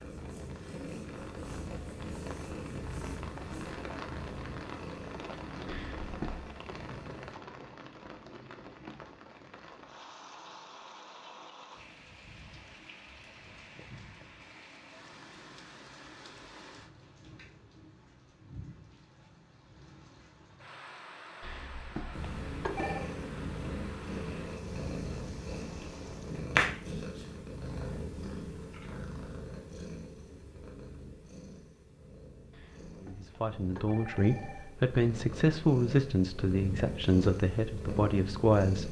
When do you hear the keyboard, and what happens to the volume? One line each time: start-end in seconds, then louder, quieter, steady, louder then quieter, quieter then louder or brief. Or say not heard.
not heard.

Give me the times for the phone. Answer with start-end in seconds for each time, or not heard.
5.7-6.5, 21.4-23.1, 32.5-34.8.